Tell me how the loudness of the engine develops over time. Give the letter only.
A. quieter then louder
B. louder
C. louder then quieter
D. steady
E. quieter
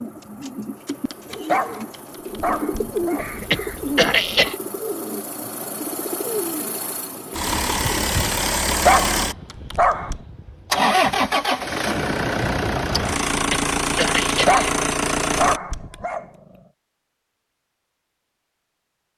B.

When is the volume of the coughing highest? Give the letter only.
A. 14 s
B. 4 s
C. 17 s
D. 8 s
B.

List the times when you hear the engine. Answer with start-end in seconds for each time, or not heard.
0.0-15.6.